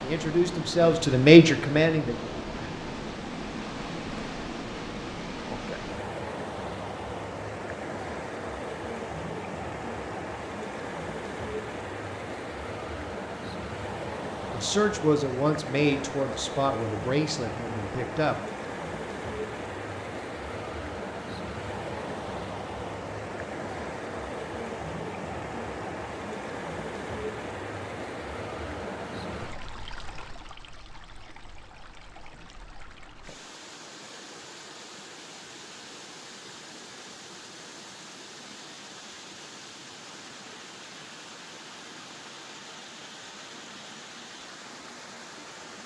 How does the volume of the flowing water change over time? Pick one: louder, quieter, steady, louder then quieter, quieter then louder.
quieter.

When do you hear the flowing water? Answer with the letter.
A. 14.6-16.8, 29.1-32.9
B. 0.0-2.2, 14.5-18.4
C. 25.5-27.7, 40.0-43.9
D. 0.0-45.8
D.